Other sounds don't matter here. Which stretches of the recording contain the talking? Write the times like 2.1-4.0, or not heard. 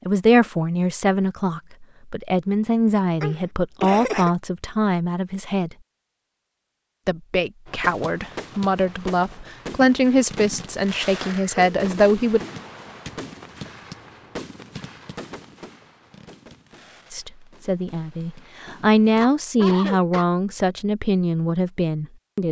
0.1-5.7, 7.0-12.4, 17.1-22.4.